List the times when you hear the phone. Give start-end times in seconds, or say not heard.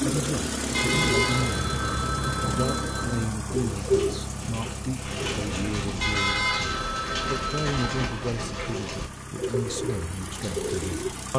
1.3-3.3, 6.3-8.1.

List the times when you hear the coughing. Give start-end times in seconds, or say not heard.
not heard.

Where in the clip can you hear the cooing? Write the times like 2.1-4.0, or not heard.
0.0-11.1.